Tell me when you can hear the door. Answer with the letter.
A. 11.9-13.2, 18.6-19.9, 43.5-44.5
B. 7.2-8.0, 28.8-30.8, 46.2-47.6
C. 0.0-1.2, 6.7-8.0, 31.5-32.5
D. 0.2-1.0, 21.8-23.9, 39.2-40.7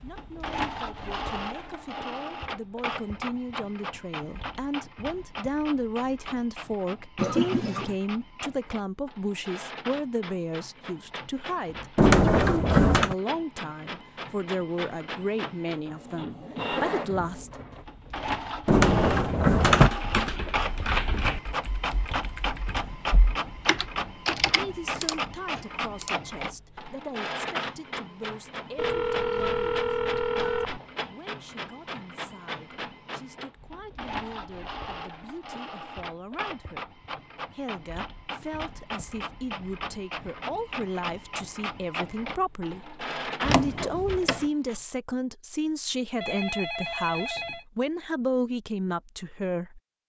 A.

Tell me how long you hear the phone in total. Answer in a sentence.
The phone can be heard for 4 seconds in total.